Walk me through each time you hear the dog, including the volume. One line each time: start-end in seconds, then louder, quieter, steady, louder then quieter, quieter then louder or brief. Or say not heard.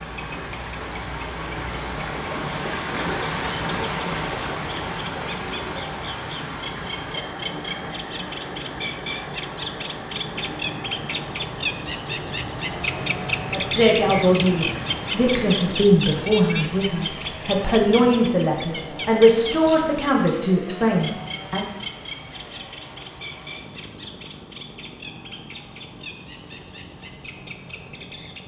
not heard.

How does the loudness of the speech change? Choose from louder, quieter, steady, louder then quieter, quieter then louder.
steady.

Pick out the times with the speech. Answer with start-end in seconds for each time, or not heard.
13.5-21.6.